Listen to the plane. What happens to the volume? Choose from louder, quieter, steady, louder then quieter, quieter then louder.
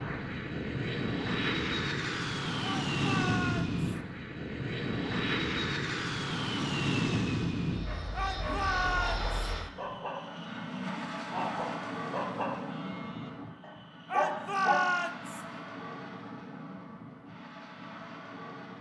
quieter.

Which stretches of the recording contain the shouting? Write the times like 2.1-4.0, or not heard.
2.6-3.8, 8.2-9.3, 14.1-15.4.